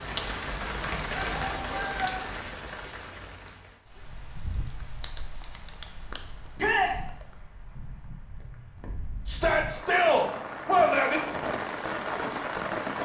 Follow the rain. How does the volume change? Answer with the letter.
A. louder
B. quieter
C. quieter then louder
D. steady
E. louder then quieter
C.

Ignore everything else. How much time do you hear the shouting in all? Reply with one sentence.
The shouting can be heard for 3 seconds in total.